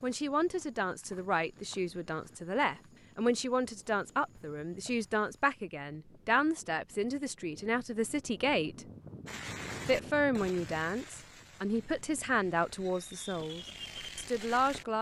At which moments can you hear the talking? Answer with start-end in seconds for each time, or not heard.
0.0-8.8, 9.8-14.9.